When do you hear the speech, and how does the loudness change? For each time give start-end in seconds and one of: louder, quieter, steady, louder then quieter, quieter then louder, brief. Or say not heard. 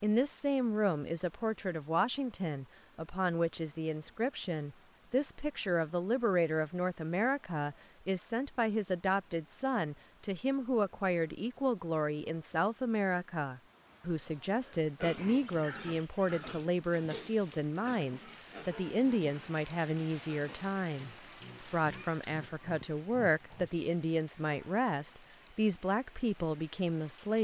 0.0-27.3 steady.